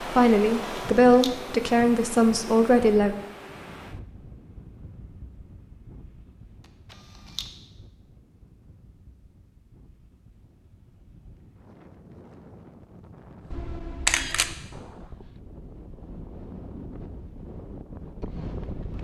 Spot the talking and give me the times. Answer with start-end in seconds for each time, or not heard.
0.1-3.1.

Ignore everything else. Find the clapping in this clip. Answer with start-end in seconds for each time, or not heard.
not heard.